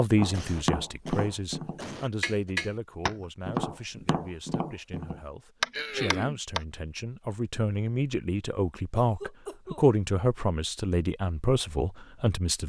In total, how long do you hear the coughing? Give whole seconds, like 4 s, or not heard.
4 s.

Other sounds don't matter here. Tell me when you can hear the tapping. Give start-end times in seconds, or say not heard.
0.1-6.6.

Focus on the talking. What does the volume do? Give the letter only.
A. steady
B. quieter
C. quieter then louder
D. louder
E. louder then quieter
C.